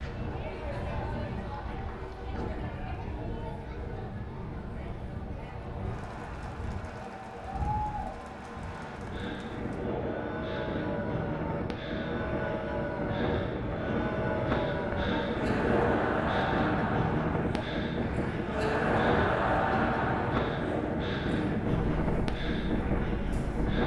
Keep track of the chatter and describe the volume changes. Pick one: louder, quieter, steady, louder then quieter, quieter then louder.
louder.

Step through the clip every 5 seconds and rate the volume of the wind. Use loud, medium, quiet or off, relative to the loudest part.
medium, medium, loud, loud, loud.